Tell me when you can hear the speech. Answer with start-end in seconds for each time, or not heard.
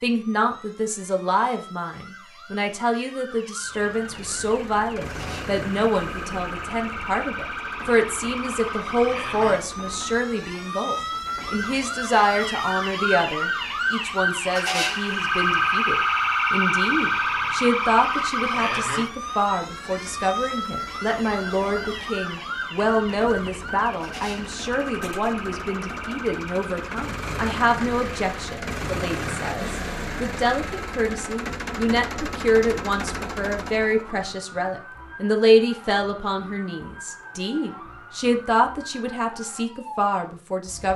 0.0-40.9.